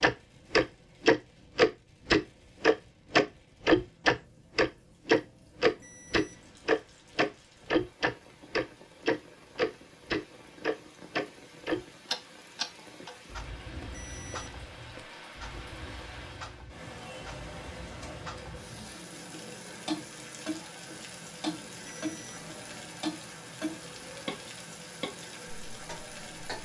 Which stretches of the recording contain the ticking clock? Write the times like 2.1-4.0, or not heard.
0.0-26.6.